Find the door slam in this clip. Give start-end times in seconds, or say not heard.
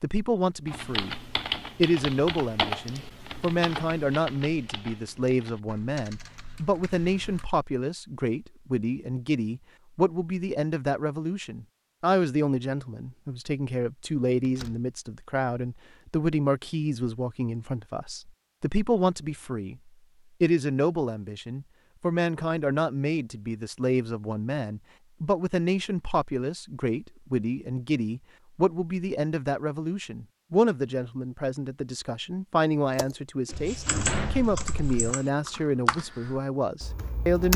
14.4-14.9, 33.5-35.0.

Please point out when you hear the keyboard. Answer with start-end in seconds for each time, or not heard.
0.7-7.5, 33.0-37.5.